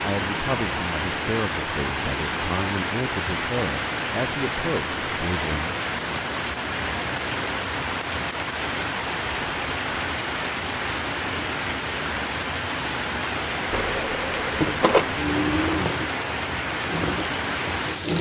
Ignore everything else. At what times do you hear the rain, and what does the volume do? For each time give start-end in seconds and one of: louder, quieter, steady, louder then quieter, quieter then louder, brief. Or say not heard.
0.0-18.1 steady.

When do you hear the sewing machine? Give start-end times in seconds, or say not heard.
13.7-18.1.